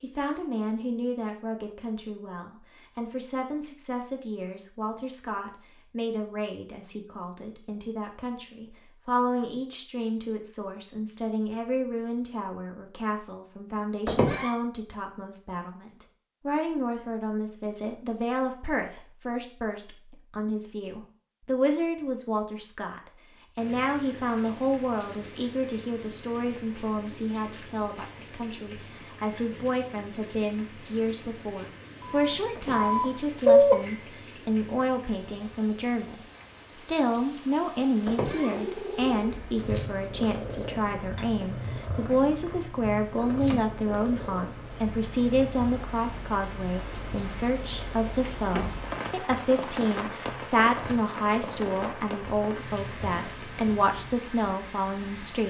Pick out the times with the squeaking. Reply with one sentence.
The squeaking can be heard from 14.1 to 14.6 s, from 32.5 to 33.0 s and from 38.0 to 38.5 s.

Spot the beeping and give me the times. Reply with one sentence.
You can hear the beeping from 32.0 to 34.0 s.